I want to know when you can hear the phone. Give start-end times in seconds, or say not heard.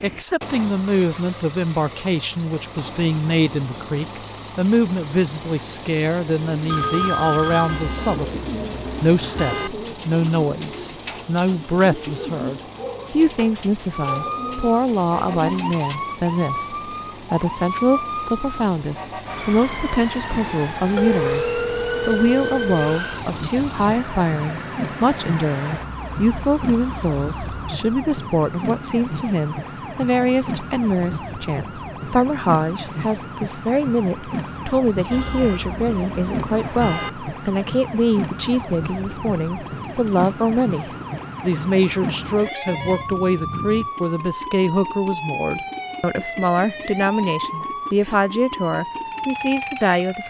6.7-7.8, 20.3-23.0, 42.5-43.9.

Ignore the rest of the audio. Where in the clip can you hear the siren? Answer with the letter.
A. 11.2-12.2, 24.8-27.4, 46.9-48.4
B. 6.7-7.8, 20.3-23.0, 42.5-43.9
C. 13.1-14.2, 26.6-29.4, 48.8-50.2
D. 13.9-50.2
D.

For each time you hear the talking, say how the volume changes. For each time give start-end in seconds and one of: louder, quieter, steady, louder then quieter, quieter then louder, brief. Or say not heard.
0.0-50.2 steady.